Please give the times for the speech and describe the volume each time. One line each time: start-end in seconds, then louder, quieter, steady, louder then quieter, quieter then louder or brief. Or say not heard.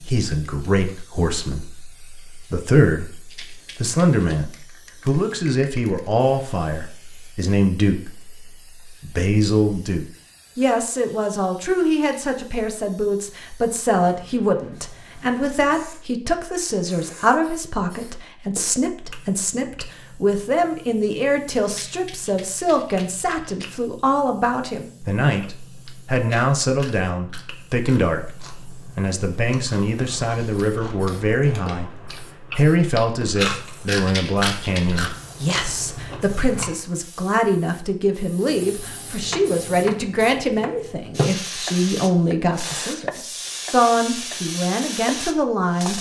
0.0-45.9 steady.